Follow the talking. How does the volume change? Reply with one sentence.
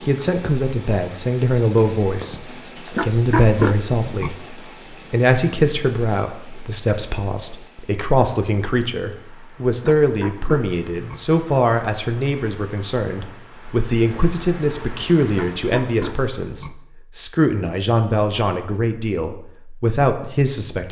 The volume of the talking stays about the same.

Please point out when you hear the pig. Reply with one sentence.
The pig can be heard from 2.9 to 4.3 s, from 9.8 to 11.2 s and from 15.3 to 16.7 s.